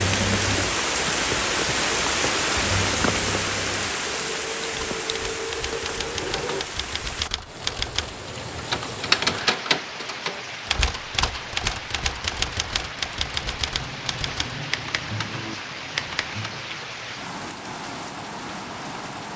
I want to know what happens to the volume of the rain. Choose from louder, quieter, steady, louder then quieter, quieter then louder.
quieter.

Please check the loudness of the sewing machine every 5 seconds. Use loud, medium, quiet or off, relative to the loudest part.
loud, loud, off, off.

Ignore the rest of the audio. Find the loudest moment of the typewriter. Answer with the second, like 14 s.
9 s.